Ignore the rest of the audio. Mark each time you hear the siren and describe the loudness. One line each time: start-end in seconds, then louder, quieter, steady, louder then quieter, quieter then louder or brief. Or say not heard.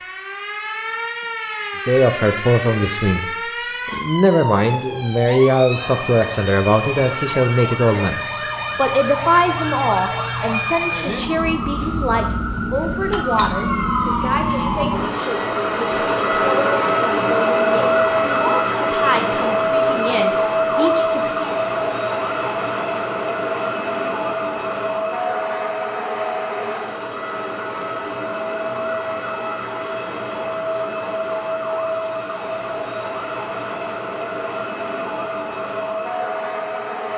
0.0-37.1 louder then quieter.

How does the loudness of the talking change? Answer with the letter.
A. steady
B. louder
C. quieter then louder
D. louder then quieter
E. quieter
E.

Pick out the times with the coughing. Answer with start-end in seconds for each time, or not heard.
not heard.